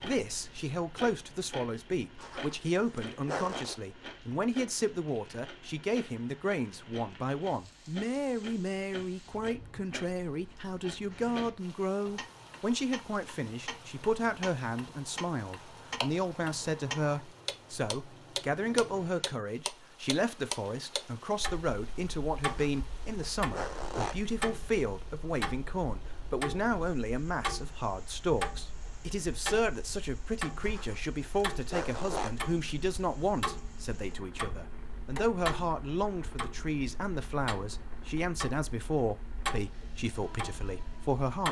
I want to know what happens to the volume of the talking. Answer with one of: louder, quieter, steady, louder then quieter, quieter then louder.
steady.